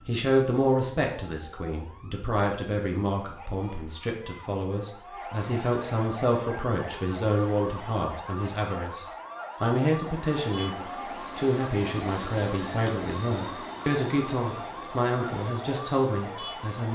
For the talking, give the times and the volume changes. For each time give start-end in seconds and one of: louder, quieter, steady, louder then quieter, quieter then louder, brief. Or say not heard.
0.1-16.9 steady.